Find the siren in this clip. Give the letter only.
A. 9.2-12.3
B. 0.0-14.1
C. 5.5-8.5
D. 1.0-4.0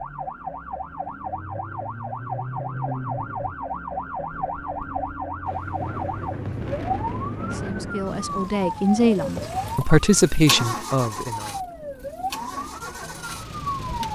B.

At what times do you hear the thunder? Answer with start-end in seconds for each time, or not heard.
5.5-8.5.